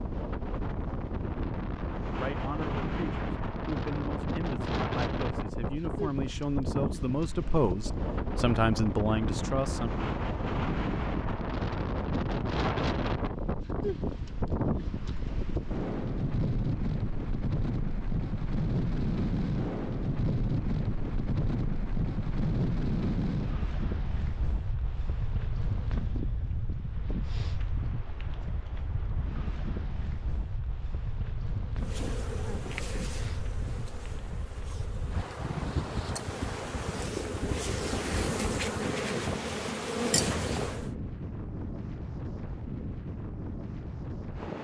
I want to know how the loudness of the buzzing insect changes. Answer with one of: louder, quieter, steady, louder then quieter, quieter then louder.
quieter then louder.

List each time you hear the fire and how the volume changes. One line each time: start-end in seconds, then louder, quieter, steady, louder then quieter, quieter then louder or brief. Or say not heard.
not heard.